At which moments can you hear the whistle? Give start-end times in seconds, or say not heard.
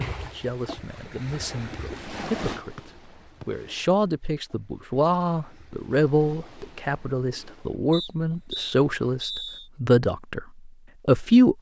2.8-3.5, 7.9-9.7.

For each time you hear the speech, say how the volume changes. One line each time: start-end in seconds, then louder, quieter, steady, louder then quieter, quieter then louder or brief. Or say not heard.
0.1-10.4 louder
11.1-11.5 brief.